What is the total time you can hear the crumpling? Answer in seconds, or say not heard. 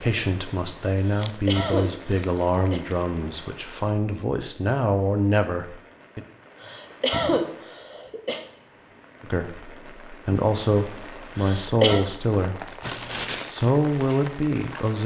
3 s.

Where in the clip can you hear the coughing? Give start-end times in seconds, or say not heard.
1.1-2.8, 6.6-8.4, 10.9-12.1.